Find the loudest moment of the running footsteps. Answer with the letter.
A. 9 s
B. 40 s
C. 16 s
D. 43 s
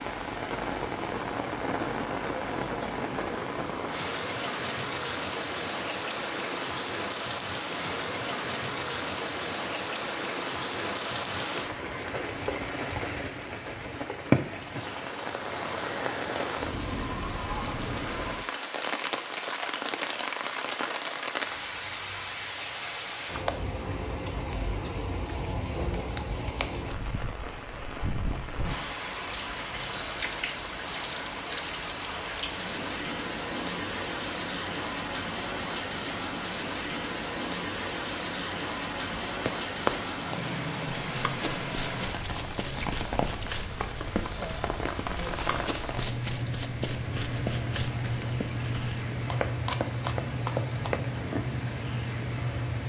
B.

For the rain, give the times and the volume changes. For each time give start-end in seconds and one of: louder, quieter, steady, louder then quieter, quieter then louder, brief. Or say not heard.
0.0-52.8 steady.